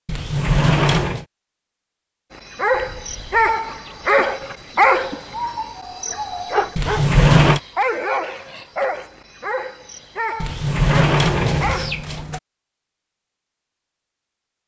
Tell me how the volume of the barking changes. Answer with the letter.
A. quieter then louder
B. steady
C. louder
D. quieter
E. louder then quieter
D.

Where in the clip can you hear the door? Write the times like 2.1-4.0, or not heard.
0.1-1.2, 6.8-7.6, 10.4-12.4.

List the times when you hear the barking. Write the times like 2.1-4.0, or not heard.
2.3-12.2.